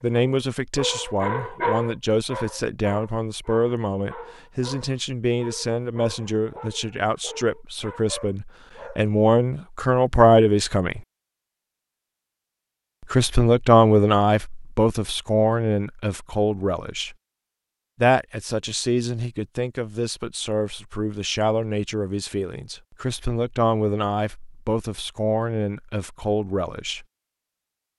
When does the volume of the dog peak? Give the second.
2 s.